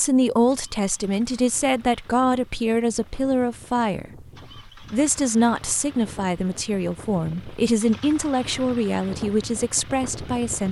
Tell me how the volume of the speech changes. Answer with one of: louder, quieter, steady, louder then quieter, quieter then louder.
steady.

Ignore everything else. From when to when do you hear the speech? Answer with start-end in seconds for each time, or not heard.
0.0-10.6.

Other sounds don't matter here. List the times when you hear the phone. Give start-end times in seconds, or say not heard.
not heard.